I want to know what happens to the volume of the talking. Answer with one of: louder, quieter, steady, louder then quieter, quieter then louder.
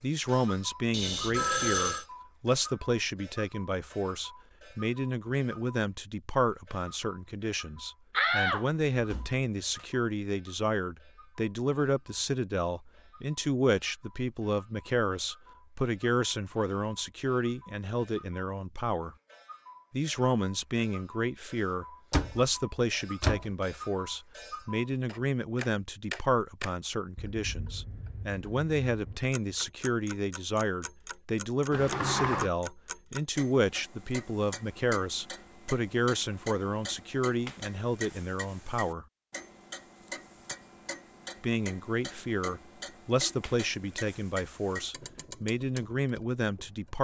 steady.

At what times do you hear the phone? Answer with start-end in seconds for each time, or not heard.
0.9-2.0.